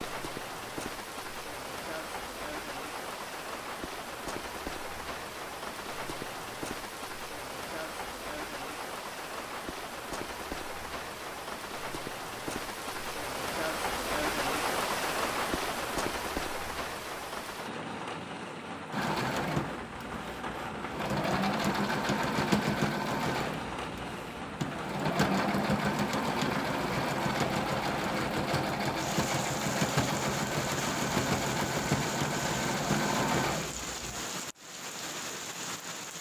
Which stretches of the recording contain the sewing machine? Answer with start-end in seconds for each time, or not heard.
18.9-34.3.